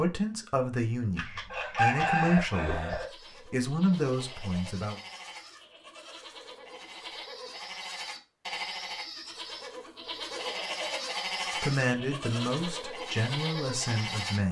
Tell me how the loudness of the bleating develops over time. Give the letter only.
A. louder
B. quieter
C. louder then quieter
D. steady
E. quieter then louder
A.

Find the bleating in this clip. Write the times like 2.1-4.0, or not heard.
2.9-14.4.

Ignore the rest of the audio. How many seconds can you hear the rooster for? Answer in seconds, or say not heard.
2 s.